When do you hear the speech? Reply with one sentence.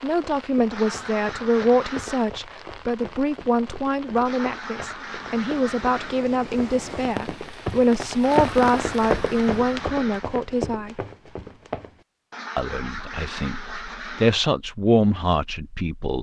You can hear the speech from 0.0 to 10.9 s and from 12.6 to 16.1 s.